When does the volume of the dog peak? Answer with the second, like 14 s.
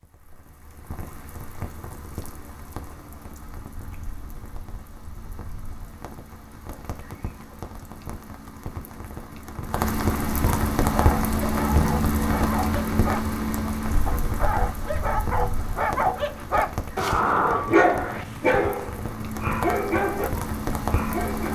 18 s.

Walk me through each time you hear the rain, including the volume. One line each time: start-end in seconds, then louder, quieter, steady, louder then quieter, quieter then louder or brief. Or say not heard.
0.0-21.5 louder then quieter.